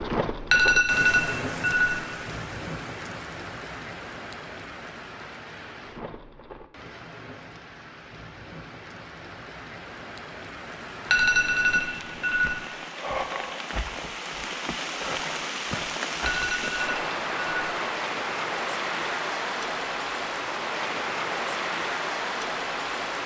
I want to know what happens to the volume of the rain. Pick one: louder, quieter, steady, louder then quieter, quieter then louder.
quieter then louder.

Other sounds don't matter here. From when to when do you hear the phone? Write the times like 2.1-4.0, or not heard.
0.5-2.0, 11.1-12.6, 16.2-17.8.